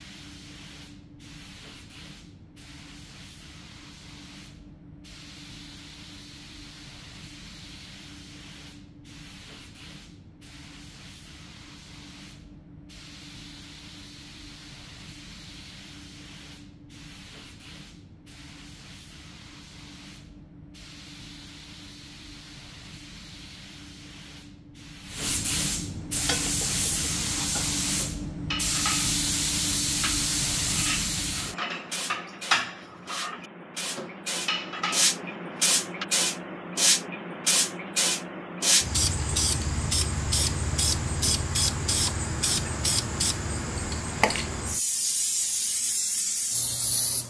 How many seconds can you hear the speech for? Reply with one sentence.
You can't hear the speech here.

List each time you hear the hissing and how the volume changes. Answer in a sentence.
The hissing can be heard from 0.0 to 47.2 s, getting louder.